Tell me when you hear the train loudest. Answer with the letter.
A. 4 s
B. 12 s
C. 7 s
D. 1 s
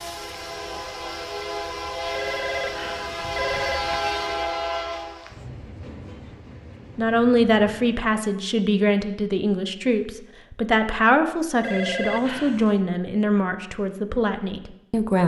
A.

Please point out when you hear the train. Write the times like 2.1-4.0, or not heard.
0.0-8.2.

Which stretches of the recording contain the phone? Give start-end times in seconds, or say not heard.
2.1-4.4, 11.6-12.8.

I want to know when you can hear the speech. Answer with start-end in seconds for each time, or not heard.
7.0-15.2.